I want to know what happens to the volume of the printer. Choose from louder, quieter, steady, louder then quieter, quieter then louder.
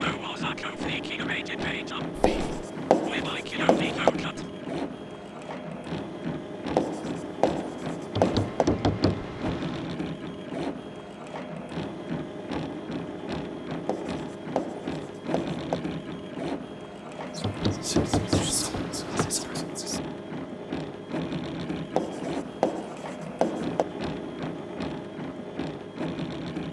steady.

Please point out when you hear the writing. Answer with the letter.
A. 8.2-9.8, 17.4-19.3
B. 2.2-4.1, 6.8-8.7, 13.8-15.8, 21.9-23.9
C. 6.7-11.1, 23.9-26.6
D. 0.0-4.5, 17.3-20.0
B.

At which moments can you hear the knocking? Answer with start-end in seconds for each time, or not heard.
8.2-9.8, 17.4-19.3.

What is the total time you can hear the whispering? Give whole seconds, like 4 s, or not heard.
7 s.